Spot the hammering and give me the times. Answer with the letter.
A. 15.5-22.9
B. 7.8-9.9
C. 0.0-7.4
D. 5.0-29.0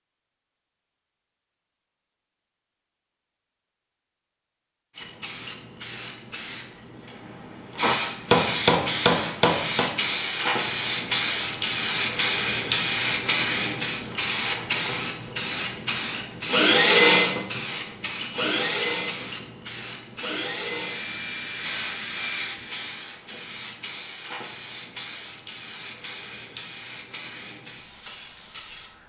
B.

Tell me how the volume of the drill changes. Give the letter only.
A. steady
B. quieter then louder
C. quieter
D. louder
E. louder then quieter
C.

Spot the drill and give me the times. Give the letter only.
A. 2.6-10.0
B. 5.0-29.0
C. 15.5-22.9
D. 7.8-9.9
C.